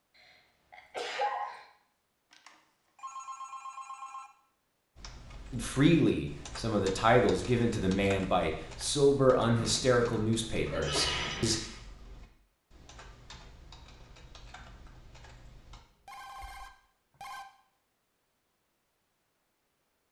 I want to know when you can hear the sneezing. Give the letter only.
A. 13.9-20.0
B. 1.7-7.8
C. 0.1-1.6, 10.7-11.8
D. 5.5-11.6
C.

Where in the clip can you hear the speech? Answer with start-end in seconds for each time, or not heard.
5.5-11.6.